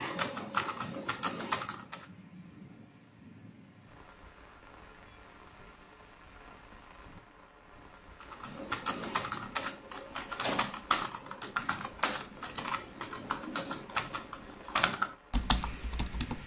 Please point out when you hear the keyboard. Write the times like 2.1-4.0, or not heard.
0.0-2.0, 8.2-16.4.